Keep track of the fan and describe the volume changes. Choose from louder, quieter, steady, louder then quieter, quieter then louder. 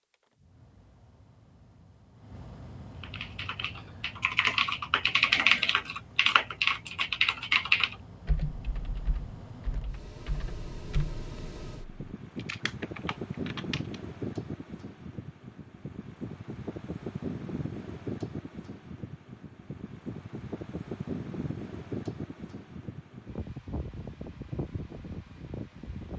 louder.